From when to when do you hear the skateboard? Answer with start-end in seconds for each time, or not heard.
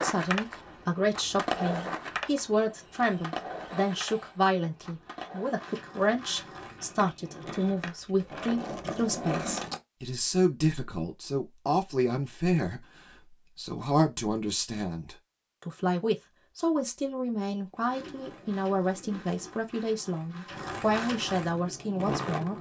0.0-9.8, 17.8-22.5.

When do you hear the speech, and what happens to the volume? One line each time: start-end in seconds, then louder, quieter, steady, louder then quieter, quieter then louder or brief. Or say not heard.
0.0-22.5 steady.